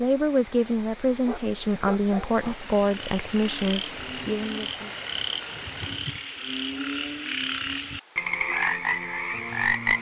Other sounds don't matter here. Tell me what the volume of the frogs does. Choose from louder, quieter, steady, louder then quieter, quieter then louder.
louder.